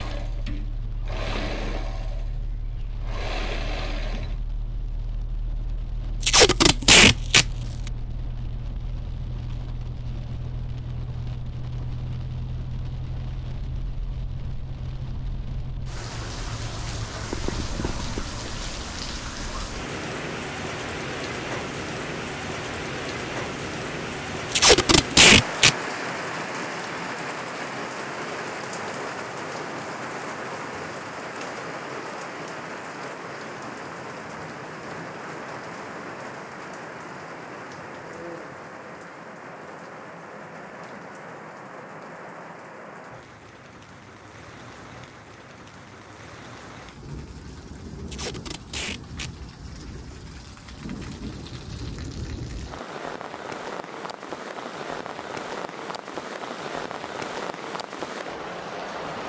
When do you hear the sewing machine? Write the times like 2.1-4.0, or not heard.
0.0-4.4.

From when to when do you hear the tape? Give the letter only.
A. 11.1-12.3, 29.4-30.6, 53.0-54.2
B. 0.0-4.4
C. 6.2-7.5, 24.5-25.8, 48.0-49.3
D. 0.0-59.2
C.